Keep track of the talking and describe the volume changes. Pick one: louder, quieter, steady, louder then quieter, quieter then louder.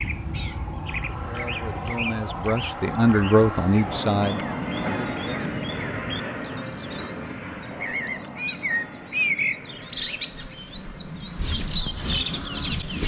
louder then quieter.